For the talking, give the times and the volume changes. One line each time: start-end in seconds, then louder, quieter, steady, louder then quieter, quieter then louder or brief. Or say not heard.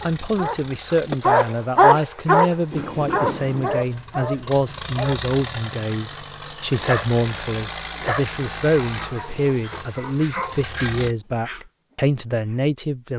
0.0-13.1 steady.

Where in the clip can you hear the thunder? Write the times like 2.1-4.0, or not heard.
2.7-3.9.